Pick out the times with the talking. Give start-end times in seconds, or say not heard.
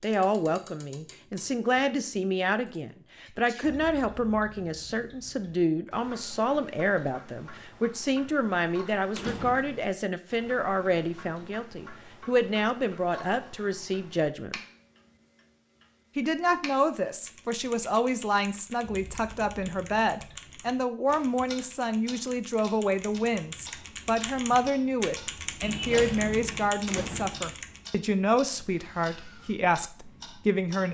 0.0-14.6, 16.1-30.8.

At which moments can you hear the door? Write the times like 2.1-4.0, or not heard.
9.2-9.8, 26.9-27.6.